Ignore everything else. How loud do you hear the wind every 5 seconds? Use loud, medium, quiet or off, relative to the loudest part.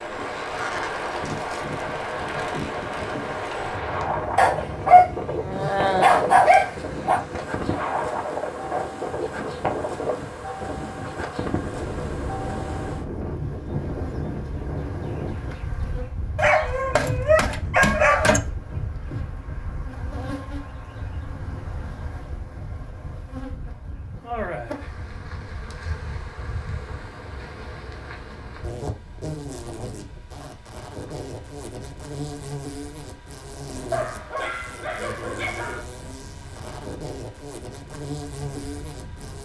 loud, loud, loud, medium, quiet, quiet, quiet, quiet.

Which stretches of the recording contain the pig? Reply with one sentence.
You can't hear the pig here.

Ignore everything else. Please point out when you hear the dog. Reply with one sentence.
You can hear the dog from 4.3 to 7.2 s, from 16.4 to 18.4 s and from 33.9 to 35.9 s.